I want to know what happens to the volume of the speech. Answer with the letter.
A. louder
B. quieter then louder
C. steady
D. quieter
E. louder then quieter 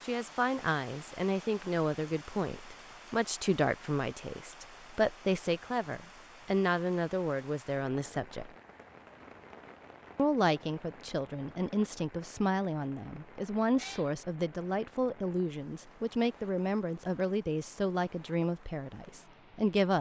C.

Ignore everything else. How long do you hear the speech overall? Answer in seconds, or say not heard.
18 s.